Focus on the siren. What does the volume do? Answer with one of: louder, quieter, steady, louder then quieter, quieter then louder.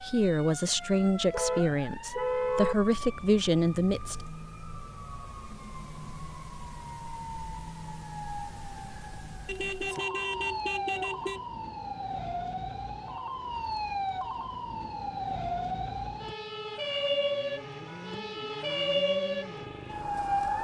louder.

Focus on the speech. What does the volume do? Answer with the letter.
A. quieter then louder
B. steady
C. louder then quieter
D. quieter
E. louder
A.